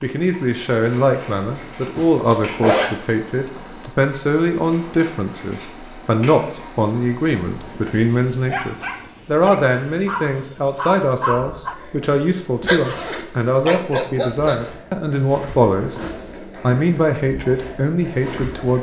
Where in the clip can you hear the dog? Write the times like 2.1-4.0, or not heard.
8.4-14.6.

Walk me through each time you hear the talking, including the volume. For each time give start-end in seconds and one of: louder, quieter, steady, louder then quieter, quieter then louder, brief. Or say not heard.
0.0-15.9 steady
16.6-18.7 brief.